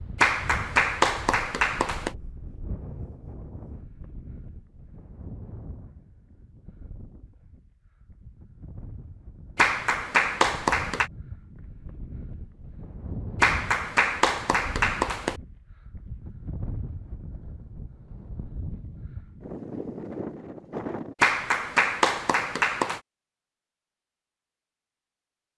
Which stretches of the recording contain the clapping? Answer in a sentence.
The clapping can be heard from 0.2 to 2.1 s, from 9.6 to 11.1 s, from 13.4 to 15.4 s and from 21.2 to 23.0 s.